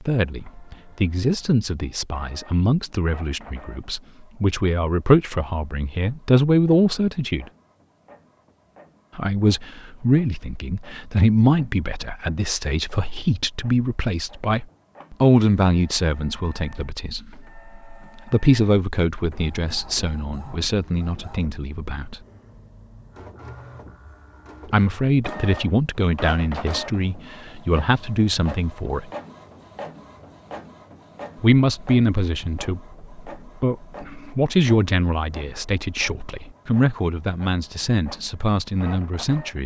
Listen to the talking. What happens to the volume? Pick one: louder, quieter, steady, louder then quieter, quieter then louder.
steady.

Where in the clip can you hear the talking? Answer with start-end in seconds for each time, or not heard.
0.1-7.5, 9.2-22.2, 24.7-29.1, 31.4-39.6.